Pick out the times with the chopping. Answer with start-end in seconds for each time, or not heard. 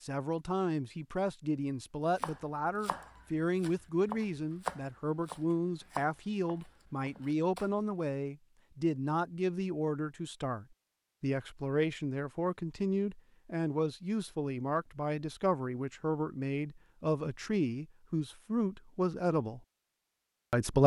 2.1-7.8.